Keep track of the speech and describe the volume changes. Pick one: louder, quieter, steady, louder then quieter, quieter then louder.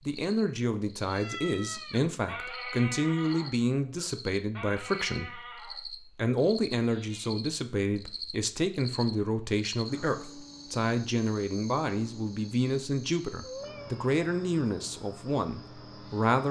steady.